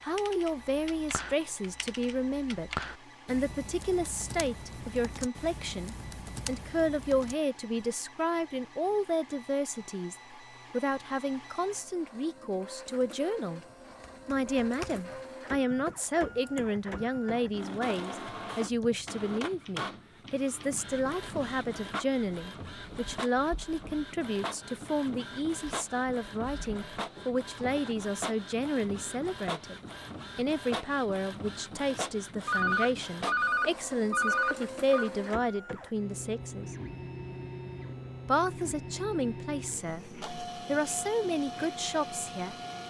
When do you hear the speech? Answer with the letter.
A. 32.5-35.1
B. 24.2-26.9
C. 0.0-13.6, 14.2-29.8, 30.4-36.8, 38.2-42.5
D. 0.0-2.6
C.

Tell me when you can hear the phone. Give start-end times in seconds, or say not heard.
32.5-35.1.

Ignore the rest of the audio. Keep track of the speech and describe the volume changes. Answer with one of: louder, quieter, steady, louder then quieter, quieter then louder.
steady.